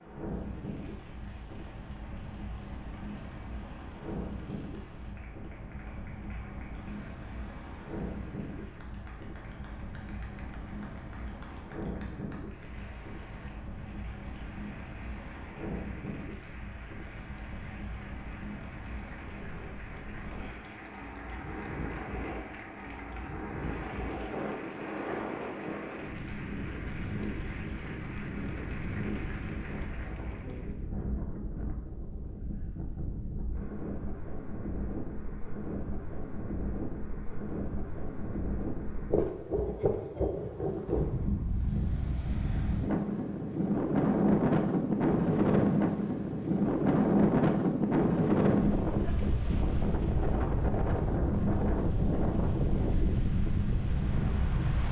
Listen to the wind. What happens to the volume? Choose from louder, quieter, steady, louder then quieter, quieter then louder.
louder.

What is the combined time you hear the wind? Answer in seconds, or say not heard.
55 s.